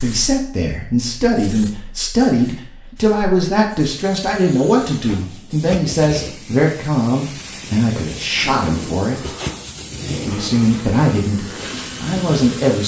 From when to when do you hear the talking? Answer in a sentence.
The talking can be heard from 0.0 to 9.3 s and from 10.2 to 12.8 s.